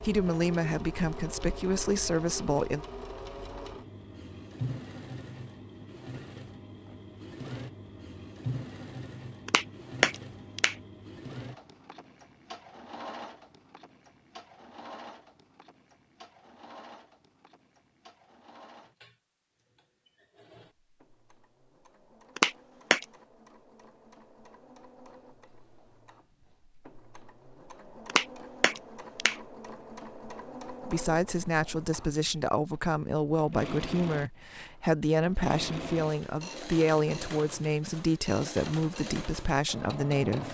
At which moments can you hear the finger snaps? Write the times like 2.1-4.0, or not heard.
9.4-10.8, 22.4-23.1, 28.1-29.4.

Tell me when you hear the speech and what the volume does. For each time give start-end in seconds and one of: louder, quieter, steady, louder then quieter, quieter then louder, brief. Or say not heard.
0.0-2.9 brief
30.9-40.4 steady.